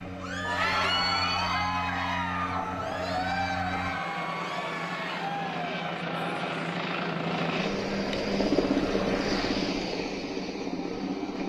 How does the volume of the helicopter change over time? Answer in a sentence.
The loudness of the helicopter goes up.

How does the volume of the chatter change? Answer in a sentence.
The volume of the chatter goes down.